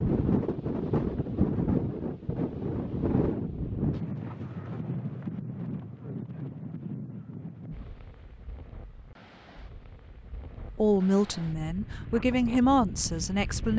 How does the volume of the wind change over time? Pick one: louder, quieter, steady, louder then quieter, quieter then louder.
quieter then louder.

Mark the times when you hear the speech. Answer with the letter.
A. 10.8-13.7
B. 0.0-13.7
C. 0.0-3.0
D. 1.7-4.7
A.